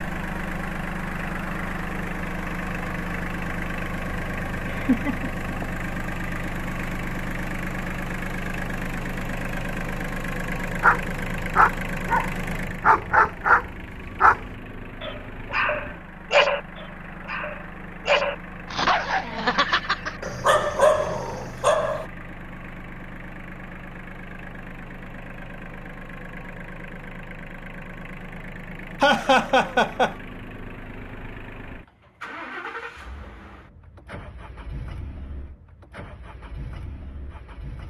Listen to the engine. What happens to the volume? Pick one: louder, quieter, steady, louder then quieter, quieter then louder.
quieter.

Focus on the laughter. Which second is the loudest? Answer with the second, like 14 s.
29 s.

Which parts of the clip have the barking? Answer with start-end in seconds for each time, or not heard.
10.8-22.1.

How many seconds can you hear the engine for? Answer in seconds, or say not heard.
38 s.